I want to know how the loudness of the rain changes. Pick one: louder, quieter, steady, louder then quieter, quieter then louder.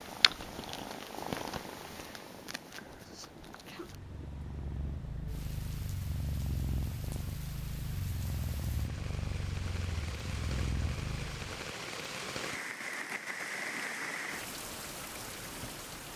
louder.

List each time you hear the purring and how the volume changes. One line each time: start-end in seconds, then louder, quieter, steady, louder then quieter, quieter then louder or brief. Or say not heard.
0.0-11.7 quieter then louder.